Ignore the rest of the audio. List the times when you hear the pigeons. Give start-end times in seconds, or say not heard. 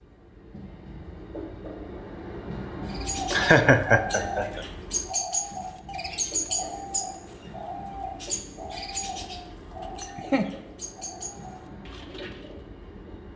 2.9-12.6.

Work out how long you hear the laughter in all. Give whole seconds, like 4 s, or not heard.
2 s.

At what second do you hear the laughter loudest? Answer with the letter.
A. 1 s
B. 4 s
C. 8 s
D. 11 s
B.